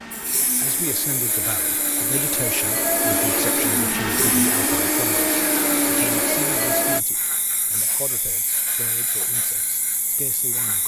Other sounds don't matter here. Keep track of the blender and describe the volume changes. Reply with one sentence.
The volume of the blender goes up.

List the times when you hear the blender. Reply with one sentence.
You can hear the blender from 0.0 to 7.0 s.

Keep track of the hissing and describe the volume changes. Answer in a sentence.
The loudness of the hissing stays about the same.